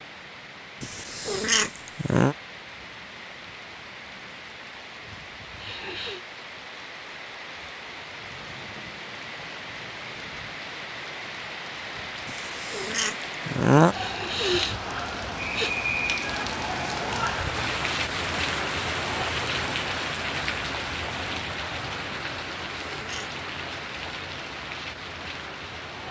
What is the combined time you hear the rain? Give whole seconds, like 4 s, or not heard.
26 s.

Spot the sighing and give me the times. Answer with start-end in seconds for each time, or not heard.
5.5-6.2, 13.9-15.7.